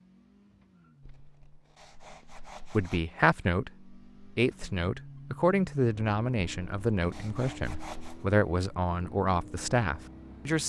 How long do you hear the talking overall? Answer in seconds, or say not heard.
8 s.